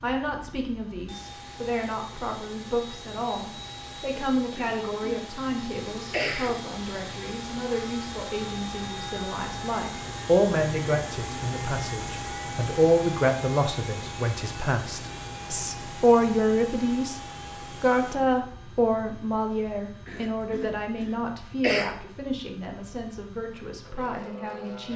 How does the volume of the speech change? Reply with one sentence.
The volume of the speech goes up, then down.